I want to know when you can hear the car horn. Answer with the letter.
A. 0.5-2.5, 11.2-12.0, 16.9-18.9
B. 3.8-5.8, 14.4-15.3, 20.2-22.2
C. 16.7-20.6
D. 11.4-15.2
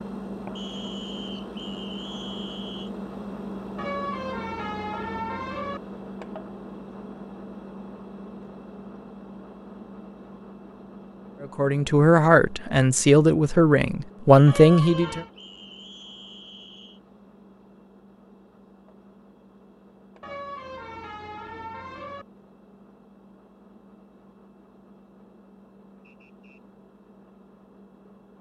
B.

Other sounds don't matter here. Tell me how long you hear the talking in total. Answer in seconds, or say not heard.
4 s.